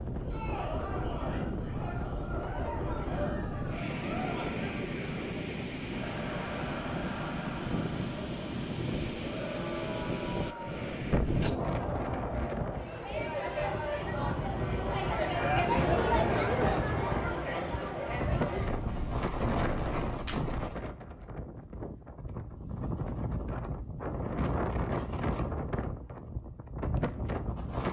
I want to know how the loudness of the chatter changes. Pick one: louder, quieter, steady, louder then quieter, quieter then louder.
louder.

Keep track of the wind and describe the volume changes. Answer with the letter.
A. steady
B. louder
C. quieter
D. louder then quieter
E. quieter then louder
A.